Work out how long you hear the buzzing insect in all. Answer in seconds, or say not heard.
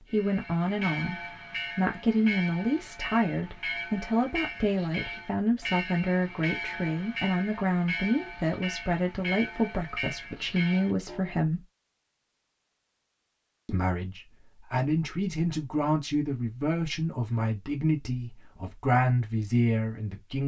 not heard.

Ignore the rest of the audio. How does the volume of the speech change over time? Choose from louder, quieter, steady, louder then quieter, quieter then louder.
steady.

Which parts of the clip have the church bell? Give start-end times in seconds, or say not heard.
0.1-11.3.